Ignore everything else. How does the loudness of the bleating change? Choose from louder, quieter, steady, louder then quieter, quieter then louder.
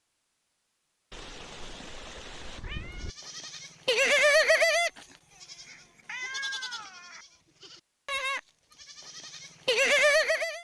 quieter then louder.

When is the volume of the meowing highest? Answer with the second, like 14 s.
6 s.